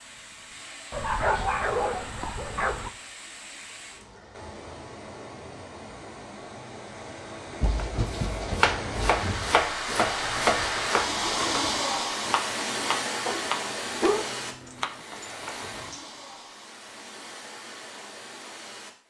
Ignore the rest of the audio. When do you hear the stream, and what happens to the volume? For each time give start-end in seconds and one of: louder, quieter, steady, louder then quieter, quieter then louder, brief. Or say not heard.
0.0-19.0 louder then quieter.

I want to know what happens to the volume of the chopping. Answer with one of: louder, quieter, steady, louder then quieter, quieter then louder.
quieter.